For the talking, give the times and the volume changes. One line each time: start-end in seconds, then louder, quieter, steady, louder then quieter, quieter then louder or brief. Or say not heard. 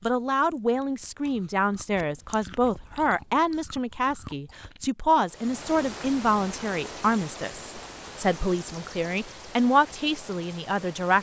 0.0-11.1 steady.